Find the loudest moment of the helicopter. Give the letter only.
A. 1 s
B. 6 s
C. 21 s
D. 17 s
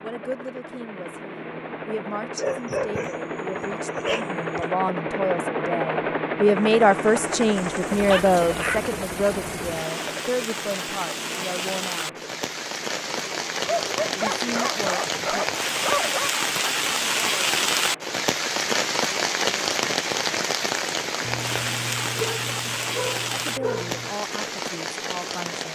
B.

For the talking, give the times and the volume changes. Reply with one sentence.
The talking can be heard from 0.0 to 12.2 s, getting louder then quieter; briefly from 14.2 to 15.4 s; and briefly from 23.3 to 25.7 s.